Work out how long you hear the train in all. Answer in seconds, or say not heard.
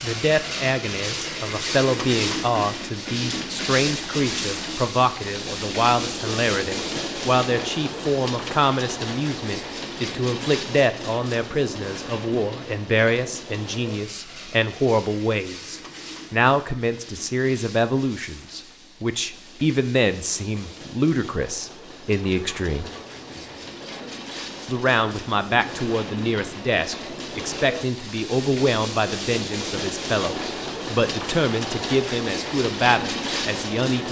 34 s.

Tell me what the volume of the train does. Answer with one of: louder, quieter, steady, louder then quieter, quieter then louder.
quieter then louder.